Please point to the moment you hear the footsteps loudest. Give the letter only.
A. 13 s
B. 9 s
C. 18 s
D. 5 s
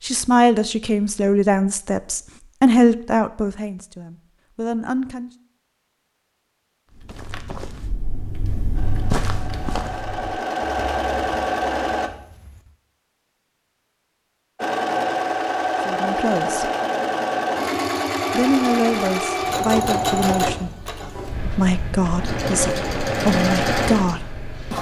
B.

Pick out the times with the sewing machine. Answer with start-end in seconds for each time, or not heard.
8.7-12.1, 14.6-24.7.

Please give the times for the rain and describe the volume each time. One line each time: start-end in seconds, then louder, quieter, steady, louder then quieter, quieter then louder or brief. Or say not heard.
not heard.